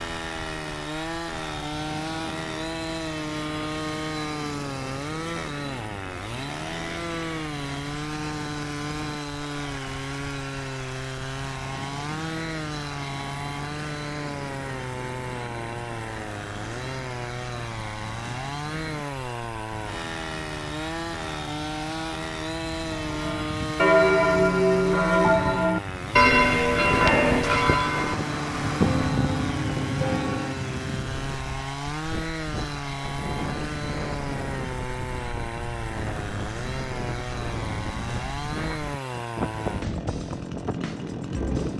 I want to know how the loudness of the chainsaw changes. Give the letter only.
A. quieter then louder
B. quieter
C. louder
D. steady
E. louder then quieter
D.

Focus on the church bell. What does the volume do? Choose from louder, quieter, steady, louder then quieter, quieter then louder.
quieter.